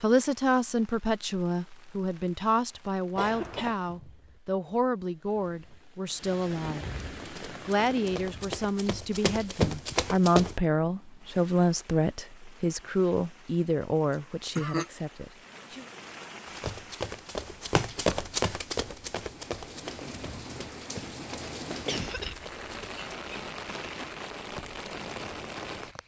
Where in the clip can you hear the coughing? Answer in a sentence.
The coughing can be heard from 3.1 to 3.8 s, from 14.1 to 14.9 s and from 21.6 to 22.4 s.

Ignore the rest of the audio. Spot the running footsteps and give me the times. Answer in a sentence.
The running footsteps can be heard from 7.2 to 10.6 s and from 16.4 to 23.1 s.